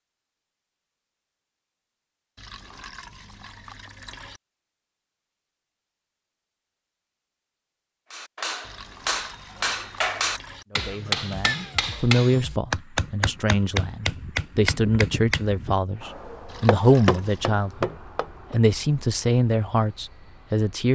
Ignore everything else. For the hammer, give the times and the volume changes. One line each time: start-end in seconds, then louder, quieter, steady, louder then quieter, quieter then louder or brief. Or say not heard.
8.1-18.6 steady.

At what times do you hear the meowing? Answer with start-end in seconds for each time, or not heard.
11.4-11.8.